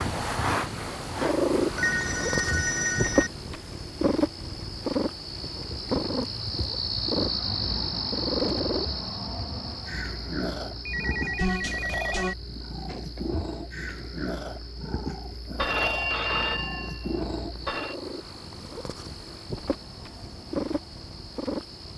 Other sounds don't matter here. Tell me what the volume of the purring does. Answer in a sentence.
The volume of the purring goes down.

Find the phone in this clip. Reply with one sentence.
You can hear the phone from 1.8 to 3.3 s, from 10.8 to 12.3 s and from 15.6 to 17.9 s.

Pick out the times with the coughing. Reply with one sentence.
You can't hear the coughing here.